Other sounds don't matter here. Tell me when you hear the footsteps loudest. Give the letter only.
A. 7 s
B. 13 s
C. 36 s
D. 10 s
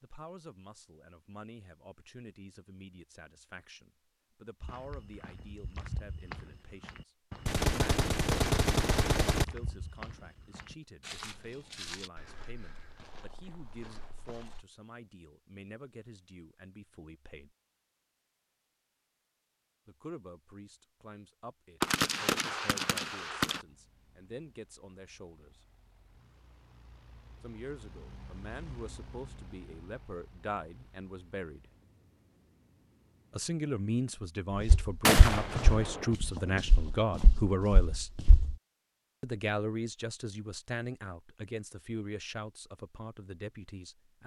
C.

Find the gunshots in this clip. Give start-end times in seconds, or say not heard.
7.5-9.4, 21.8-23.6, 35.0-36.1.